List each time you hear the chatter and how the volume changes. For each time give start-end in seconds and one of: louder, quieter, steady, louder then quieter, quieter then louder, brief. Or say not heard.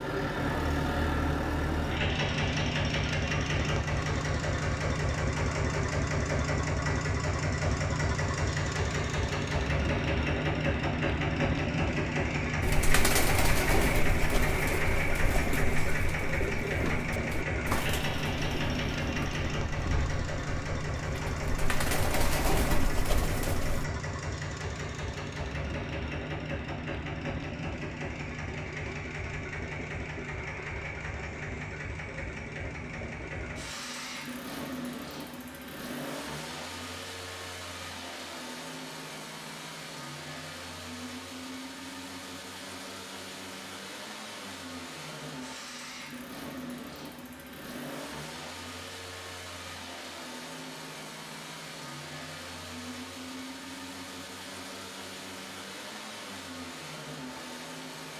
not heard.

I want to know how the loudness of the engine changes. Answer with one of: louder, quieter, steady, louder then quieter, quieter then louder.
quieter.